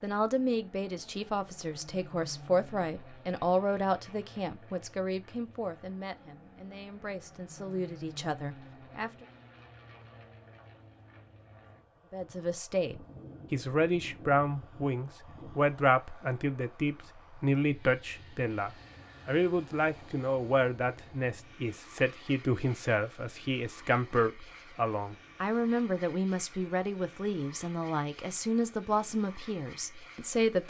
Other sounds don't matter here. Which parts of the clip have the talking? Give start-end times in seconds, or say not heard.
0.0-9.2, 12.1-30.6.